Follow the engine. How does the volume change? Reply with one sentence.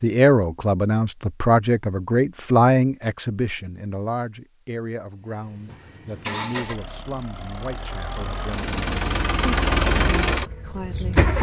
The loudness of the engine goes down, then up.